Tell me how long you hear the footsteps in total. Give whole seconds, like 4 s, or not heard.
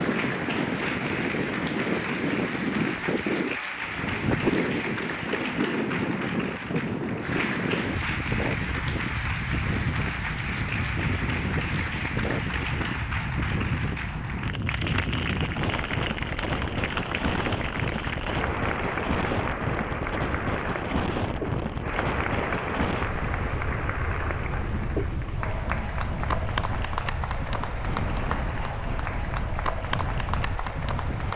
not heard.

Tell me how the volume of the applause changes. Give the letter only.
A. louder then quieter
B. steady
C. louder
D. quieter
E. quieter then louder
B.